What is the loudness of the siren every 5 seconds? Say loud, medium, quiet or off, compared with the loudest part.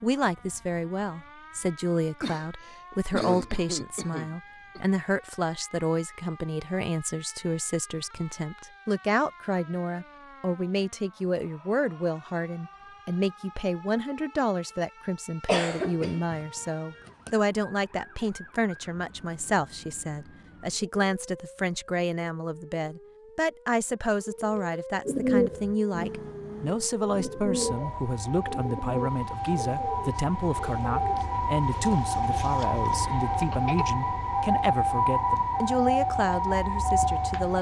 quiet, quiet, quiet, quiet, quiet, medium, loud, loud.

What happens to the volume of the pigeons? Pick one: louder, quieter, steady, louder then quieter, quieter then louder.
louder then quieter.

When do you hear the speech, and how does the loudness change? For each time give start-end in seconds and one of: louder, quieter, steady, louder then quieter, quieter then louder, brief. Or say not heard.
0.0-37.5 steady.